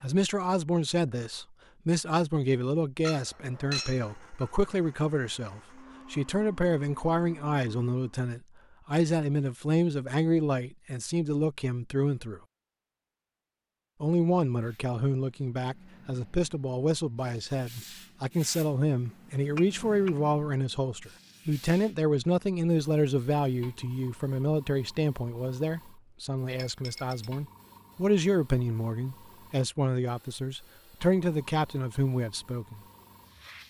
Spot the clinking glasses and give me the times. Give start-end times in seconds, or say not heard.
3.0-4.5, 19.6-20.1, 26.5-27.3.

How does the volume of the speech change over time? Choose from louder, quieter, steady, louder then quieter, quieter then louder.
steady.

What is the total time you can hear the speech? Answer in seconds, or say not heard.
31 s.